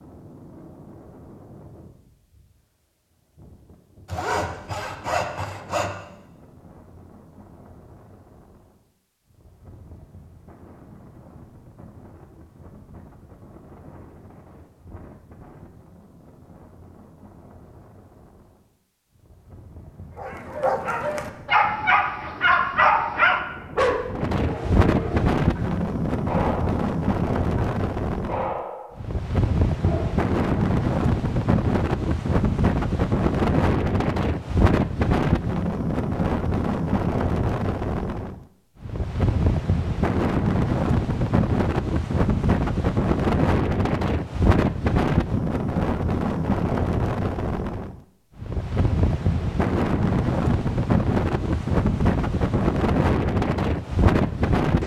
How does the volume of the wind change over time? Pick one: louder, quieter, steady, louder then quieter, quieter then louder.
louder.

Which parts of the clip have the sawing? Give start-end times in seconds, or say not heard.
4.0-6.0.